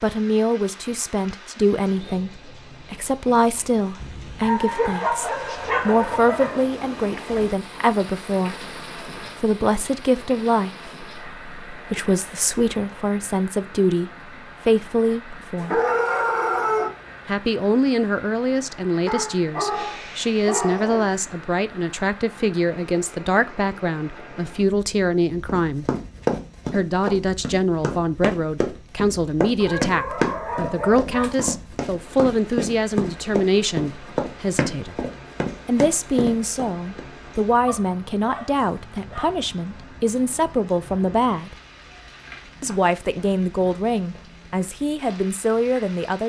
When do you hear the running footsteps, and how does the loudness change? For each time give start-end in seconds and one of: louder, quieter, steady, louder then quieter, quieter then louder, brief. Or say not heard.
25.4-37.0 steady.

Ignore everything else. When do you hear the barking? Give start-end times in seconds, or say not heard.
4.4-6.7, 15.6-16.9, 19.1-21.2, 29.6-31.6, 37.6-39.4.